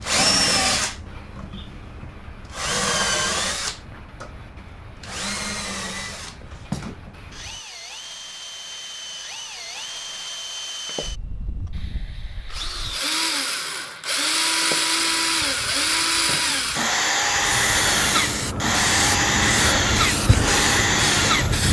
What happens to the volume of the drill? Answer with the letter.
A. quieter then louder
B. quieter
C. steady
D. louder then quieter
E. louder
A.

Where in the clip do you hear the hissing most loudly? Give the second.
20 s.